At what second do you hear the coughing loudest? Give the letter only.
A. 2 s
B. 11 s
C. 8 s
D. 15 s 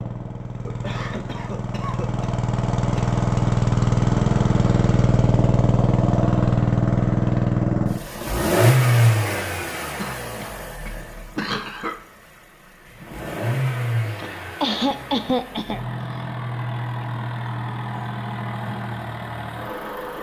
D.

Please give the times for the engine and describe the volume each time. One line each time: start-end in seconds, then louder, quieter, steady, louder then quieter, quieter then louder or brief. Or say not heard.
0.0-20.1 quieter.